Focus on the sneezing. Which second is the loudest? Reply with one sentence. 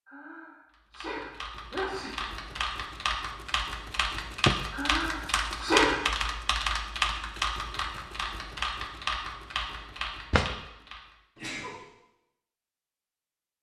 The volume of the sneezing peaks at 6 seconds.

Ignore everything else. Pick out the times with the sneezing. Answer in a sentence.
The sneezing can be heard from 0.1 to 2.1 s, from 4.7 to 6.0 s and from 11.3 to 11.8 s.